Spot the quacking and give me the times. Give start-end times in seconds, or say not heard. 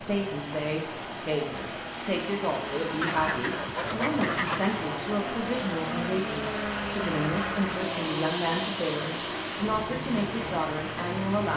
3.0-4.8.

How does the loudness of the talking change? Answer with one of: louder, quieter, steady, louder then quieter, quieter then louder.
steady.